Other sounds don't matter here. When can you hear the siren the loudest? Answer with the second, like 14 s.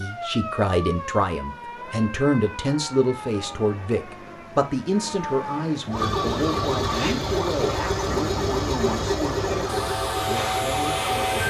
11 s.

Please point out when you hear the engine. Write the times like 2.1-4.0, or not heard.
5.9-11.4.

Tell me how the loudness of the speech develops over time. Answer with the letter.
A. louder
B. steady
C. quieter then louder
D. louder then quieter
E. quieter
E.